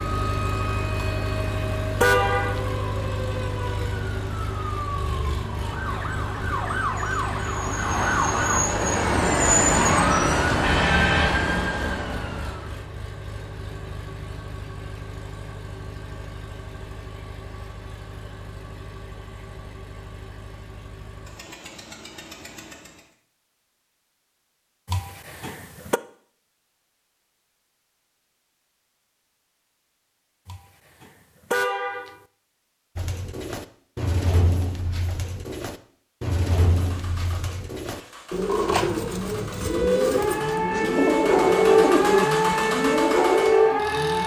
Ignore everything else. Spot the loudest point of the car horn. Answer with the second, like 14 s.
2 s.